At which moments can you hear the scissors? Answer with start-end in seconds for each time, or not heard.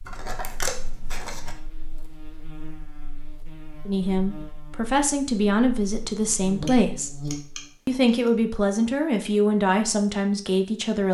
0.1-1.6, 6.5-8.3.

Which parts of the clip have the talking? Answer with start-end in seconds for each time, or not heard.
3.9-7.2, 7.8-11.0.